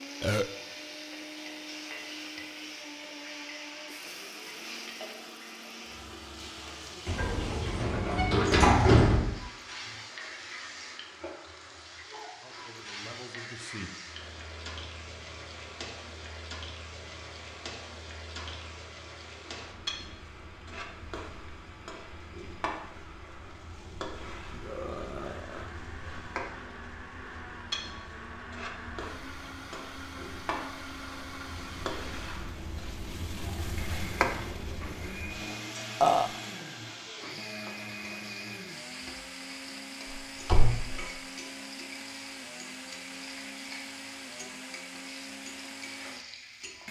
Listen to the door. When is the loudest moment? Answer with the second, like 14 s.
9 s.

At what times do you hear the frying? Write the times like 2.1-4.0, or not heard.
0.0-46.8.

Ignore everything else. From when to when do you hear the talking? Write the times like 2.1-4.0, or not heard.
12.3-13.9.